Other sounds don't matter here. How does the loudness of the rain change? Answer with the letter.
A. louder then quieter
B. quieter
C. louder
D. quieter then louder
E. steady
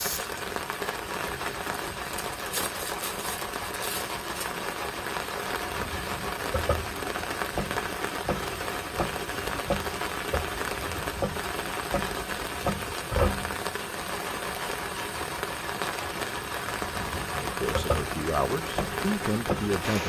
E.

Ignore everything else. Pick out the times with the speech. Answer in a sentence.
The speech can be heard from 17.4 to 20.0 s.